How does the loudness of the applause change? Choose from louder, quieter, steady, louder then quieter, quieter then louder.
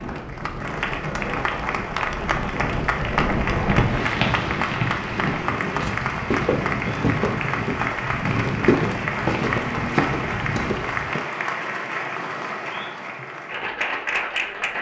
steady.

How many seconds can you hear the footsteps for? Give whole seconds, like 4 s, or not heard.
8 s.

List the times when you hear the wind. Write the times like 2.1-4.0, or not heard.
0.0-11.2.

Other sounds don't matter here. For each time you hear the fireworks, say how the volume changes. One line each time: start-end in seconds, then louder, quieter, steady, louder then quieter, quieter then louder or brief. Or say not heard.
not heard.